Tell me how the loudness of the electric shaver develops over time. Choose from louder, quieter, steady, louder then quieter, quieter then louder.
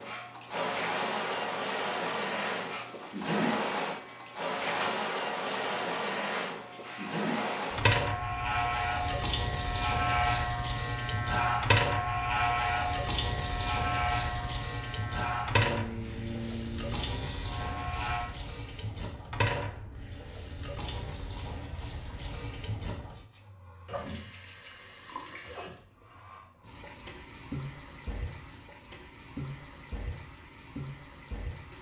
louder then quieter.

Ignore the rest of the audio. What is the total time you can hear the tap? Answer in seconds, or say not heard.
32 s.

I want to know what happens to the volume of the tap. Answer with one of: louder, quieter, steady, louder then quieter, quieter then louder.
quieter.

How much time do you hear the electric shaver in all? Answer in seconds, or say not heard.
18 s.